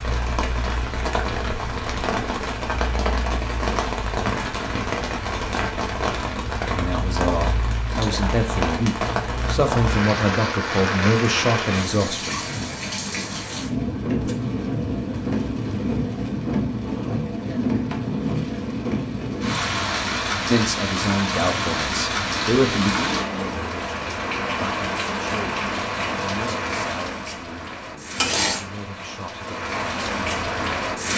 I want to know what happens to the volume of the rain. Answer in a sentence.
The volume of the rain stays about the same.